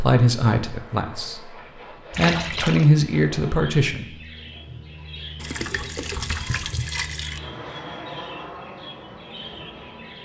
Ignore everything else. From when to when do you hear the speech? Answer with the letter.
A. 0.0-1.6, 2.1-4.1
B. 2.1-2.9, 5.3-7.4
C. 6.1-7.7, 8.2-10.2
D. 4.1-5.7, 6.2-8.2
A.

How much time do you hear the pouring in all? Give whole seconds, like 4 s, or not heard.
3 s.